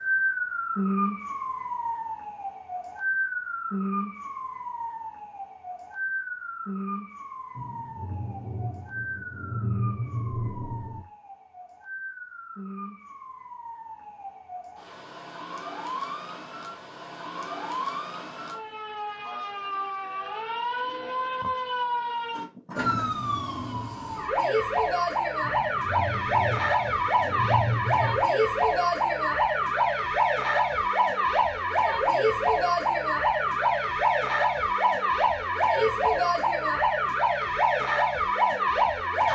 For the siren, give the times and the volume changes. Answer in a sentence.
The siren can be heard from 0.0 to 39.3 s, getting quieter then louder.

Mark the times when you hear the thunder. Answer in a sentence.
You can hear the thunder from 7.5 to 11.1 s and from 25.4 to 28.3 s.